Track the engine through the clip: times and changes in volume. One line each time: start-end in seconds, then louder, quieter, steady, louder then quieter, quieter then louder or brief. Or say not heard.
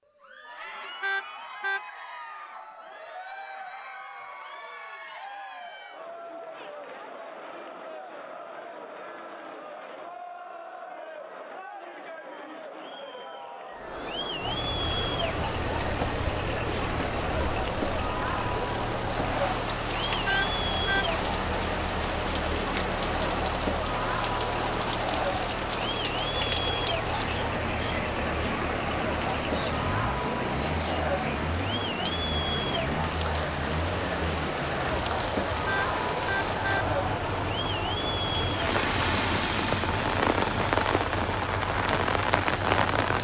14.3-43.1 steady.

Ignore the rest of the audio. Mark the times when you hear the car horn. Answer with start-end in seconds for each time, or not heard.
1.0-1.8, 20.2-21.1, 35.6-36.9.